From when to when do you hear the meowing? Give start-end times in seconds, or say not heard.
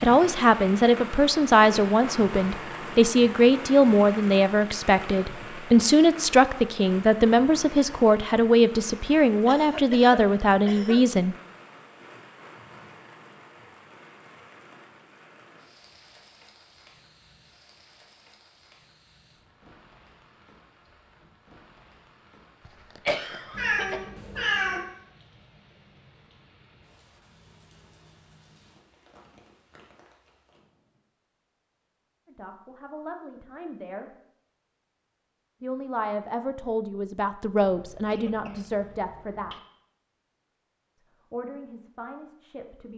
23.5-24.8.